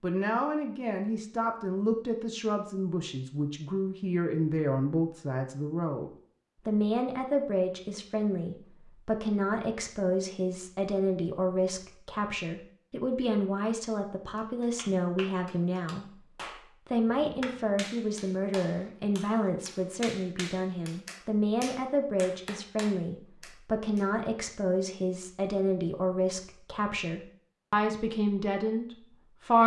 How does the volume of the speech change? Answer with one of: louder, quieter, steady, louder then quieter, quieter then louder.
steady.